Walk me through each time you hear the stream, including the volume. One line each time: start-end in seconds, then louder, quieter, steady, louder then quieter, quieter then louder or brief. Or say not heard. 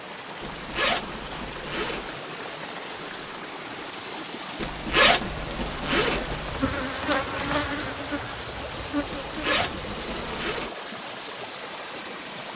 0.0-12.5 steady.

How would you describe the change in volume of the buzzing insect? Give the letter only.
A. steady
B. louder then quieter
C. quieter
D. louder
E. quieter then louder
B.